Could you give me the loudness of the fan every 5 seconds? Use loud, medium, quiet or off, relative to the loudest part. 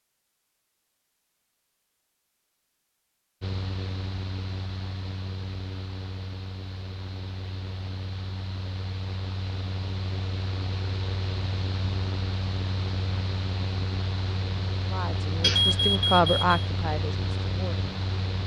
loud, medium, loud, loud.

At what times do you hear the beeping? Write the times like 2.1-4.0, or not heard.
15.4-16.5.